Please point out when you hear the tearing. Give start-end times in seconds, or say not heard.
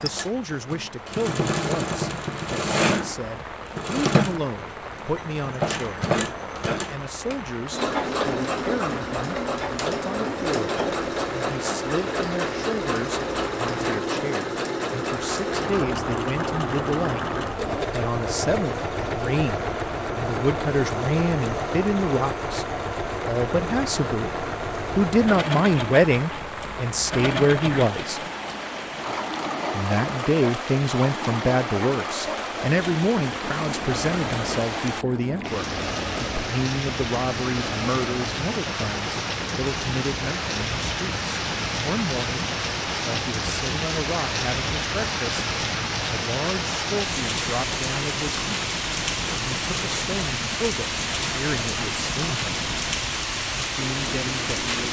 not heard.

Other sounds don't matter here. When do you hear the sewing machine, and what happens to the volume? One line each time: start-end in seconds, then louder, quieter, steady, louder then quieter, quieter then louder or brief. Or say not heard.
0.0-54.8 quieter.